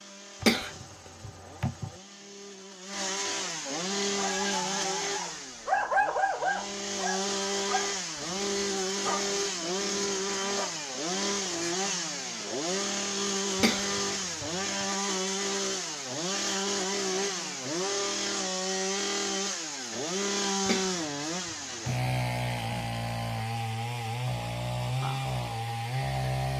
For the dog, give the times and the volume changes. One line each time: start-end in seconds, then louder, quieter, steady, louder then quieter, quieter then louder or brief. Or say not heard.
4.2-10.8 louder then quieter.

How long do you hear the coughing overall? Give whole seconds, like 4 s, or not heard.
4 s.